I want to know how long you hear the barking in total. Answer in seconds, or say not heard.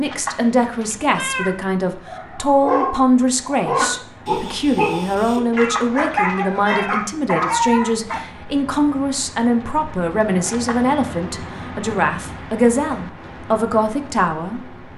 6 s.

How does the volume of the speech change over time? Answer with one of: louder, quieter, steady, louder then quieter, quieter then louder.
steady.